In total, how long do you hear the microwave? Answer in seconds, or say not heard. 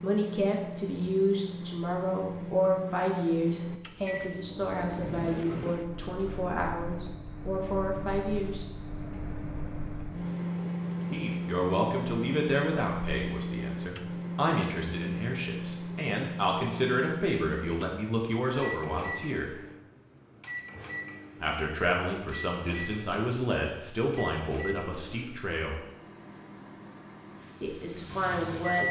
29 s.